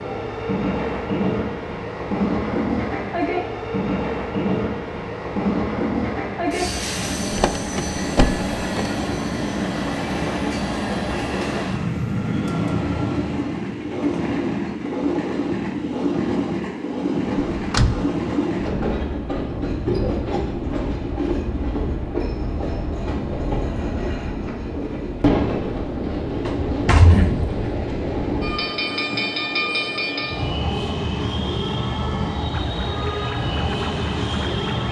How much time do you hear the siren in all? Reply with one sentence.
The siren can be heard for 2 seconds in total.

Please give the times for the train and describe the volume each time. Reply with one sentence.
The train can be heard from 0.0 to 34.8 s, at a steady volume.